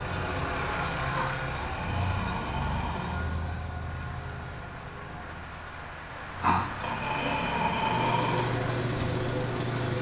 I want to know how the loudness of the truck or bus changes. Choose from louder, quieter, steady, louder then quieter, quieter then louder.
quieter then louder.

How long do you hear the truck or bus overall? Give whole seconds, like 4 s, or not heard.
10 s.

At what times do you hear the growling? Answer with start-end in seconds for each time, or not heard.
1.1-3.1, 6.4-8.4.